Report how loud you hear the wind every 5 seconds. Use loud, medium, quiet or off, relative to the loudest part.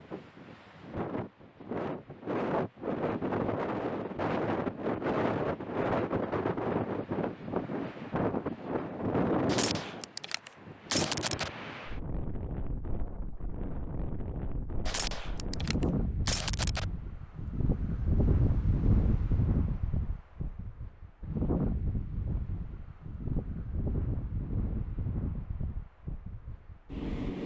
loud, loud, medium, loud, medium, medium.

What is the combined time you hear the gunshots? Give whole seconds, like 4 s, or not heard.
4 s.